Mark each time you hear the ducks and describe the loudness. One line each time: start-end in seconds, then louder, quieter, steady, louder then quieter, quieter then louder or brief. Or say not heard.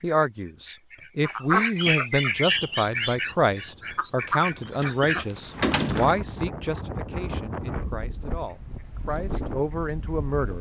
0.0-5.2 louder then quieter
8.3-10.5 brief.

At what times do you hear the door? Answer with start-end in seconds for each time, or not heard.
4.8-6.2.